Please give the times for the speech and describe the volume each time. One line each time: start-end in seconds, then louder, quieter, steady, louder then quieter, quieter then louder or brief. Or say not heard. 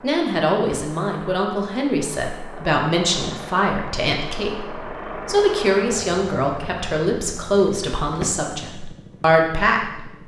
0.0-10.1 steady.